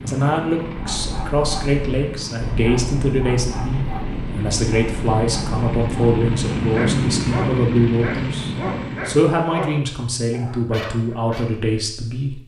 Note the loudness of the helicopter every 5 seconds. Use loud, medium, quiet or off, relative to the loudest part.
medium, loud, off.